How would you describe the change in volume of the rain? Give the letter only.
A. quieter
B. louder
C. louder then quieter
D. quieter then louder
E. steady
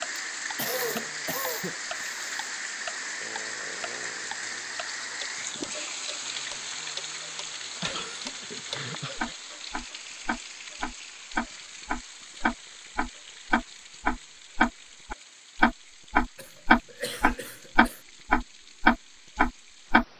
A.